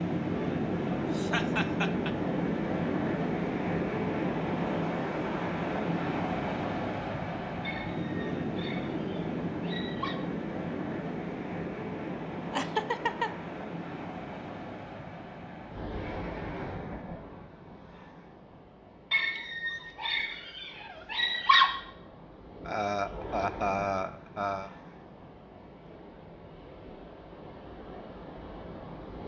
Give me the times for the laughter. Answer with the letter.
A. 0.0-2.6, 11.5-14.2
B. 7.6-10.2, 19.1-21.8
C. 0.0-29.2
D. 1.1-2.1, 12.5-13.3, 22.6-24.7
D.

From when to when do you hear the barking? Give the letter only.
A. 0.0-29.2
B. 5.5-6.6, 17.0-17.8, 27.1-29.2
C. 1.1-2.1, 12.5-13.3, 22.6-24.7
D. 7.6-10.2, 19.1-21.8
D.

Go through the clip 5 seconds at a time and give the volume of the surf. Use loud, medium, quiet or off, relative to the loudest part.
loud, loud, medium, quiet, quiet, quiet.